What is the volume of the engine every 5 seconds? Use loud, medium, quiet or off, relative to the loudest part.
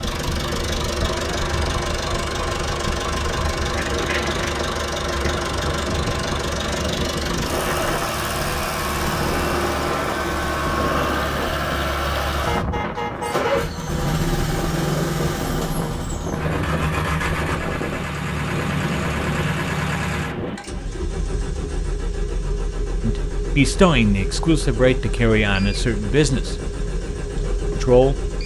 loud, loud, loud, loud, medium, medium.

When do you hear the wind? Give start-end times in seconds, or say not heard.
0.0-20.6.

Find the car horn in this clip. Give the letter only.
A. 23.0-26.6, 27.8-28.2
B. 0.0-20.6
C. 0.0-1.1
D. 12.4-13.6
D.